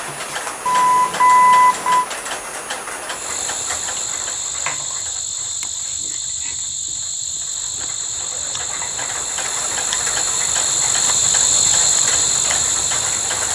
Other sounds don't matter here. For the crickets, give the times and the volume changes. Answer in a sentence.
You can hear the crickets from 3.0 to 13.5 s, getting louder.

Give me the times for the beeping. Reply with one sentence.
You can hear the beeping from 0.7 to 2.0 s.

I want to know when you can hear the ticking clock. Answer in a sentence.
The ticking clock can be heard from 0.0 to 13.5 s.